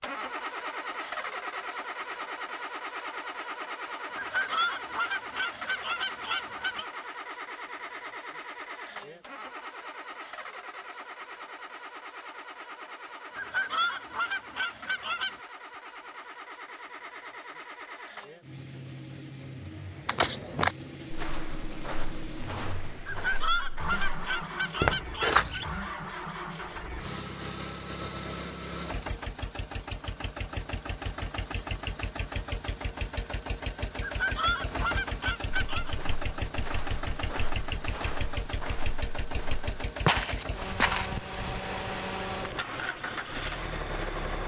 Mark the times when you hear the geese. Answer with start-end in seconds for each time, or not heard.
4.2-6.8, 13.3-15.3, 23.1-25.4, 34.0-36.0.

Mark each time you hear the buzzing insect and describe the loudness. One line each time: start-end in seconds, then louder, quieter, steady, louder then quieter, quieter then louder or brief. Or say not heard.
not heard.